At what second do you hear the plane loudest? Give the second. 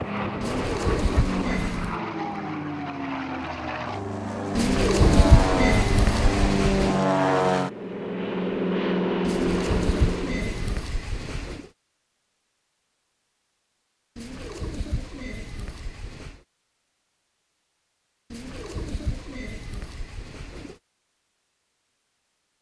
7 s.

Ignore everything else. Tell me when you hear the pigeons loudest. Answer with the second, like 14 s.
5 s.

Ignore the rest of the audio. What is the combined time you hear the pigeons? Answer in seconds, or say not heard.
11 s.